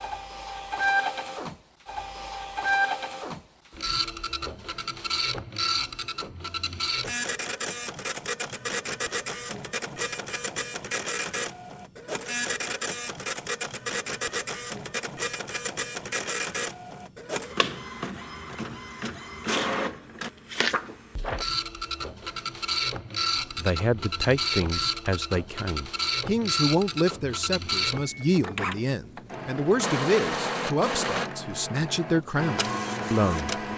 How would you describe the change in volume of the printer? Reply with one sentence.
The loudness of the printer stays about the same.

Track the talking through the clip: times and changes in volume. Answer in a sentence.
You can hear the talking from 23.6 to 33.6 s, at a steady volume.